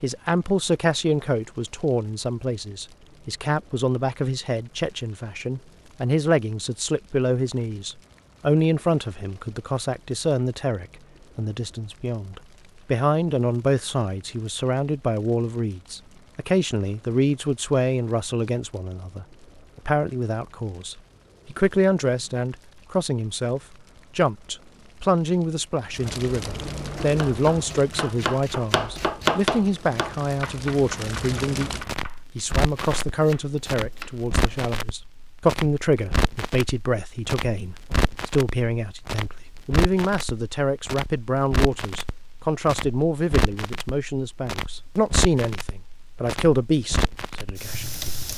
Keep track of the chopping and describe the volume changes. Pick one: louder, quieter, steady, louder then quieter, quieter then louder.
louder then quieter.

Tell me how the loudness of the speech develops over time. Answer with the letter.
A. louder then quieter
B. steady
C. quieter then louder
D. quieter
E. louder
B.